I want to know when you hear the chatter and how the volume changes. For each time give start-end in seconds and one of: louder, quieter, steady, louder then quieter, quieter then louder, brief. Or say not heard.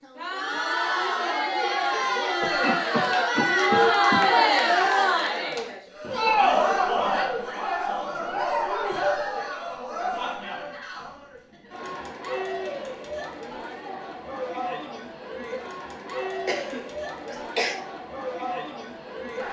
0.0-19.4 quieter.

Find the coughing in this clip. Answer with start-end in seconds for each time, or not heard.
2.4-4.2, 15.9-17.8.